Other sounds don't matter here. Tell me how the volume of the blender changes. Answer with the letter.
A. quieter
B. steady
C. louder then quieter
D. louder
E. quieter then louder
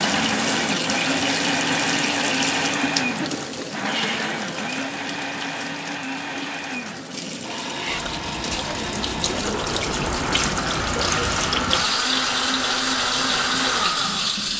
E.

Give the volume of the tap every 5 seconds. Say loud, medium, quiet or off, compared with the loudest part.
loud, medium, loud.